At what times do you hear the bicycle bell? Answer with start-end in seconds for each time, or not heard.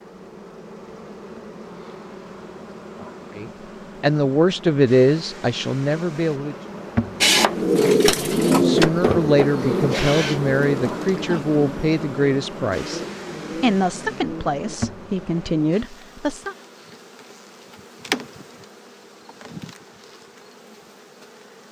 not heard.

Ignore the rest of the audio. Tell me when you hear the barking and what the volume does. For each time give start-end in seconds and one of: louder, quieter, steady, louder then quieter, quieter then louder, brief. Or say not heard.
not heard.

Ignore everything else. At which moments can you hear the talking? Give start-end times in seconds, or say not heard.
3.3-6.5, 8.5-13.0, 13.6-16.6.